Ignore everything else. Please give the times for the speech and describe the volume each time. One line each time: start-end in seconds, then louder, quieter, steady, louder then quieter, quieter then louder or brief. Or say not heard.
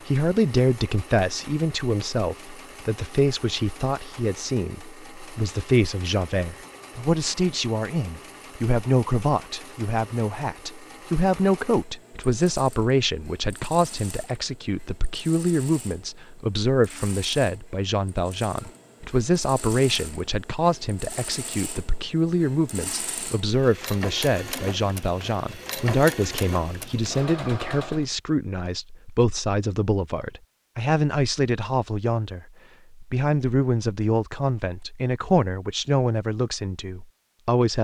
0.1-37.8 steady.